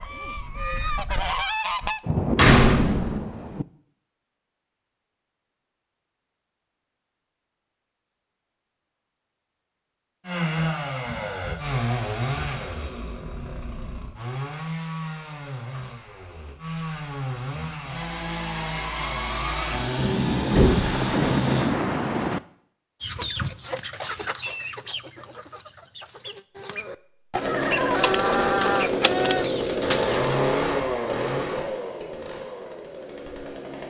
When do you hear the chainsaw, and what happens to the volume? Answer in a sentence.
You can hear the chainsaw from 10.2 to 21.7 s, getting quieter then louder; and from 27.4 to 33.8 s, getting quieter.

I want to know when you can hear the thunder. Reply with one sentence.
You can hear the thunder from 2.0 to 3.6 s and from 20.8 to 22.4 s.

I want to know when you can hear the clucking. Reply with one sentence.
You can hear the clucking from 0.0 to 2.0 s and from 23.0 to 30.2 s.